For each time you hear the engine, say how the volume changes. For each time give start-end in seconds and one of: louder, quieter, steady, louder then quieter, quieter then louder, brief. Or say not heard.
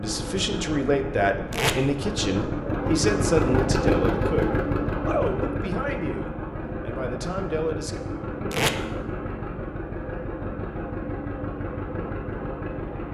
0.0-13.1 louder then quieter.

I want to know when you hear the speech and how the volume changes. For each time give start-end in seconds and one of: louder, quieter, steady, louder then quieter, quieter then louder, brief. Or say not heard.
0.0-8.0 quieter.